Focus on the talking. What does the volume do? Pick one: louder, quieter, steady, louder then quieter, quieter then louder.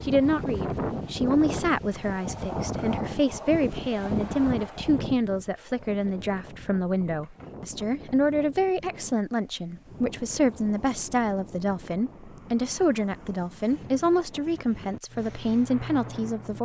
steady.